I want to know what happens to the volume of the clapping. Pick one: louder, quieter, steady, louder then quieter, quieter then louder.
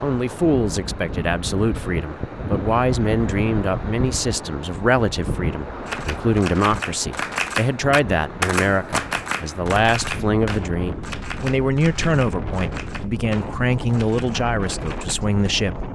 quieter.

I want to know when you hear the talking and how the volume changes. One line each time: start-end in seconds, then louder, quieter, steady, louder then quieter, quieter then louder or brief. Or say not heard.
0.0-15.8 steady.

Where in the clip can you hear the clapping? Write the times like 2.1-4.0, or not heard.
5.8-15.2.